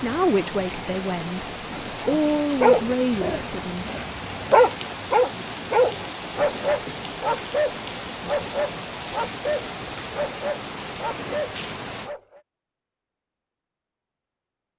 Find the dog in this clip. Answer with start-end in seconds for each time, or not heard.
2.0-12.4.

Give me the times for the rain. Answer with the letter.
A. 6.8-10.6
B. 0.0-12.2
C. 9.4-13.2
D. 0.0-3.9
B.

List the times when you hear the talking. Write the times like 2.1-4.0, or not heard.
0.0-3.9.